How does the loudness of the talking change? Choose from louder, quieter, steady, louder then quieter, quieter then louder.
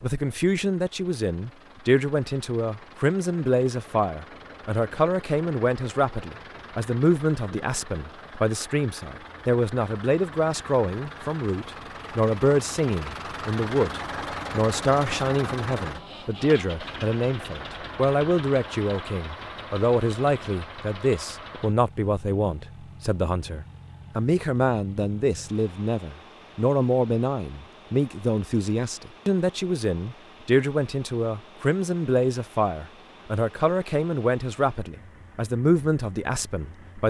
steady.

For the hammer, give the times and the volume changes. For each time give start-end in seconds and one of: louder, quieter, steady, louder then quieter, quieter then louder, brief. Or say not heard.
not heard.